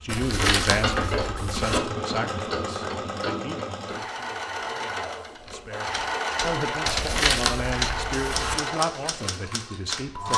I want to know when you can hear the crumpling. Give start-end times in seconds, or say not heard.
0.1-1.8, 6.8-8.6.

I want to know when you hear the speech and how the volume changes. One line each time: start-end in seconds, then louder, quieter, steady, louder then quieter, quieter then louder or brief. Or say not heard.
0.0-10.3 quieter then louder.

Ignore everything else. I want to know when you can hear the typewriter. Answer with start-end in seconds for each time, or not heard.
5.4-10.3.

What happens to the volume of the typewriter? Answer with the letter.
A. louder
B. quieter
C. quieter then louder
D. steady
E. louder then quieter
E.